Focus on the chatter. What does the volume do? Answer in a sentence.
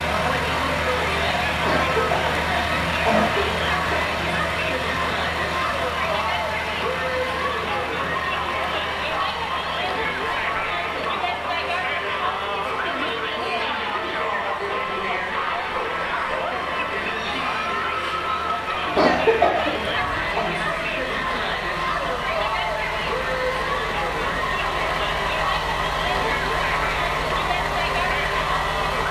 The loudness of the chatter stays about the same.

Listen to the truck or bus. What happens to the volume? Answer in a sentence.
The volume of the truck or bus goes down, then up.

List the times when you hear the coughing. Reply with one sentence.
You can hear the coughing from 1.6 to 4.0 s and from 18.9 to 20.5 s.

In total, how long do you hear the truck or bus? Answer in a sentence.
The truck or bus can be heard for 29 seconds in total.